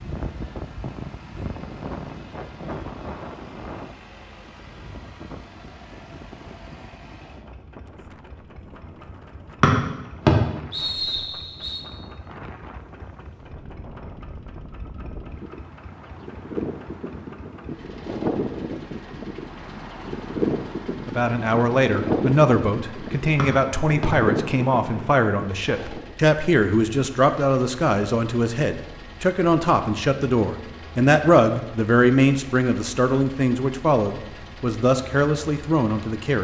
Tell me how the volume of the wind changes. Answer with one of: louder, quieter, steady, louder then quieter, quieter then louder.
quieter then louder.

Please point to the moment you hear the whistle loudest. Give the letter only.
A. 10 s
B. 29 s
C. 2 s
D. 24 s
A.